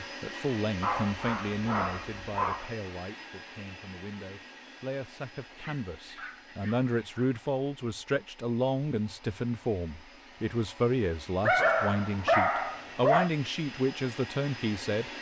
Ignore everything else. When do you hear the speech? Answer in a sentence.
You can hear the speech from 0.0 to 15.1 s.